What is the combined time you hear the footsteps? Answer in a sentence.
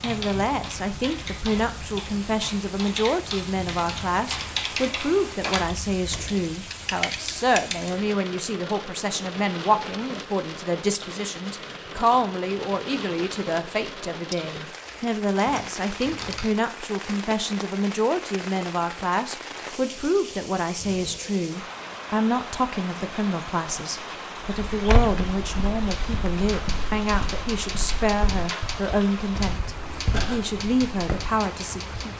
The footsteps can be heard for 7 seconds in total.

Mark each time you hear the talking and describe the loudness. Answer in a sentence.
You can hear the talking from 0.0 to 32.1 s, at a steady volume.